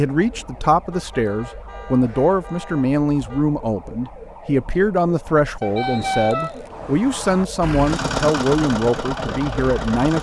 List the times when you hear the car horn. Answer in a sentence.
You can hear the car horn from 0.9 to 3.5 s and from 5.6 to 7.5 s.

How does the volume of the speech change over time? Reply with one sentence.
The volume of the speech stays about the same.